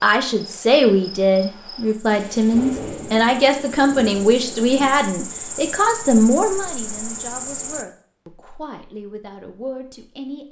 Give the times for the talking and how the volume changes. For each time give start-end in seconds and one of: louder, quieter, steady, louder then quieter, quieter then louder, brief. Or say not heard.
0.0-10.4 quieter.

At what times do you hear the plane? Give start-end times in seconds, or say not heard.
not heard.